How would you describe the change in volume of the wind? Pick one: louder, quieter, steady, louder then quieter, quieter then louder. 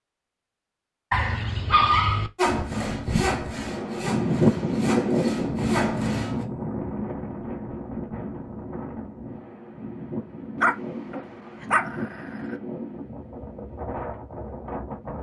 quieter.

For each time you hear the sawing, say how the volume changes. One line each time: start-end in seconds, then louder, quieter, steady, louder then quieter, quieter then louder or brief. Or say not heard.
2.4-6.5 quieter then louder.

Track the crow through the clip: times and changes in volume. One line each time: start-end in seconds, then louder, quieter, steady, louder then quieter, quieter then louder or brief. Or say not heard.
not heard.